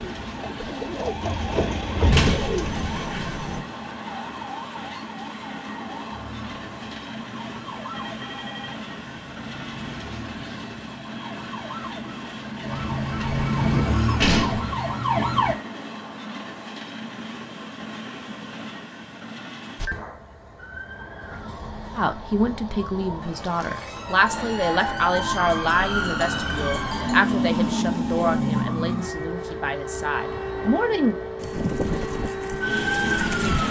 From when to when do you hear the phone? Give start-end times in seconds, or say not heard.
7.9-8.8.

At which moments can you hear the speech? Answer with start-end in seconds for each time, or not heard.
21.9-31.1.